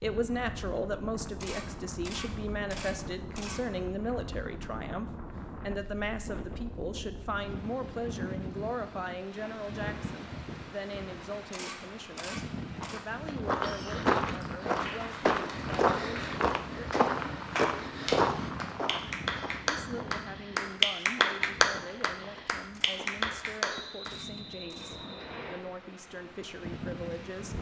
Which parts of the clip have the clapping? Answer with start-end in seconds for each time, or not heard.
14.4-24.1.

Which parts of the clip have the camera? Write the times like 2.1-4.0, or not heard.
1.4-3.6, 11.5-13.1, 22.7-24.9.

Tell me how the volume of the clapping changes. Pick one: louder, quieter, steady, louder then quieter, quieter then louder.
louder then quieter.